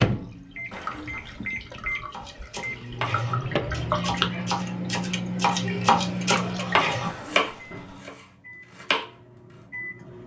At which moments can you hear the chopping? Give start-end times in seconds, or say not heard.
2.1-9.1.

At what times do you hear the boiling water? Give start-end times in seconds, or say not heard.
not heard.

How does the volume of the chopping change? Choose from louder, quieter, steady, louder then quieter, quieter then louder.
louder then quieter.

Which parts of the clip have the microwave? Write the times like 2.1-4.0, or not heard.
0.0-10.2.